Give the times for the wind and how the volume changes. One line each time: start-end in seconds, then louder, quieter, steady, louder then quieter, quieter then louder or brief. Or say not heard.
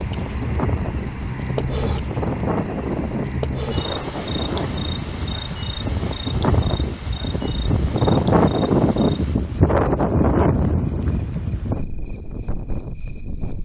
0.0-13.6 louder then quieter.